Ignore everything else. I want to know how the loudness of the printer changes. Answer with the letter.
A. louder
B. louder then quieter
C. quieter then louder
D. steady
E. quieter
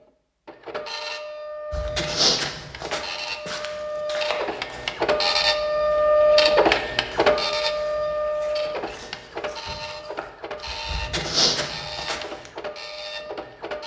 B.